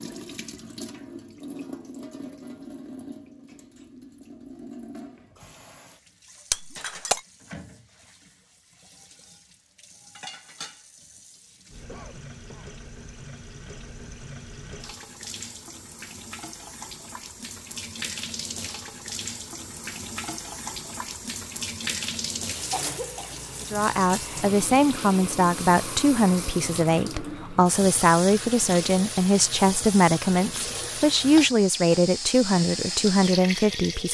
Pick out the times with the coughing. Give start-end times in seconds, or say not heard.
11.8-12.8, 22.5-23.4.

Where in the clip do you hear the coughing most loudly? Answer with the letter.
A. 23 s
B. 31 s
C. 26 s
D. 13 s
A.